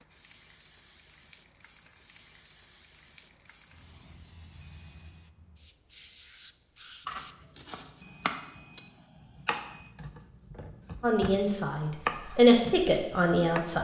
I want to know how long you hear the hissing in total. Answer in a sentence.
You can hear the hissing for 8 seconds altogether.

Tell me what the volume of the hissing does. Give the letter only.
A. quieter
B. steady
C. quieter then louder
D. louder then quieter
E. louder
E.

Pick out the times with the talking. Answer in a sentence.
The talking can be heard from 11.0 to 13.7 s.